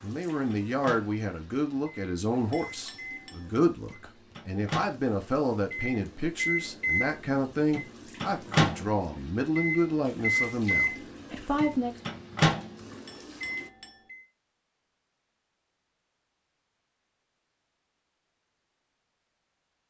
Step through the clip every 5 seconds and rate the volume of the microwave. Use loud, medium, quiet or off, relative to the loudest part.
medium, loud, loud, off.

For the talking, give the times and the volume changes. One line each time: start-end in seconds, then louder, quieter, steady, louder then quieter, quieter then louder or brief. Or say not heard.
0.0-12.0 steady.